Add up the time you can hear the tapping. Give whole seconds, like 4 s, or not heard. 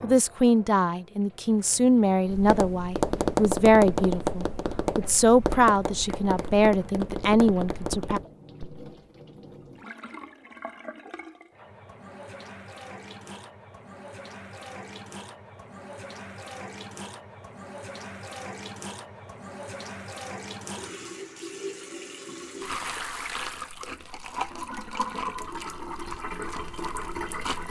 6 s.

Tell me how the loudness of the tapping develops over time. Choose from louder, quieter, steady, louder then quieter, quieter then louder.
quieter.